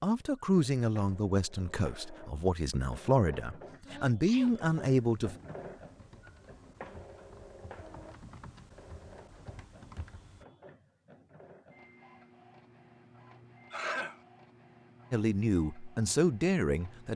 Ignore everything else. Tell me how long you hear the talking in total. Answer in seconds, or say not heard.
7 s.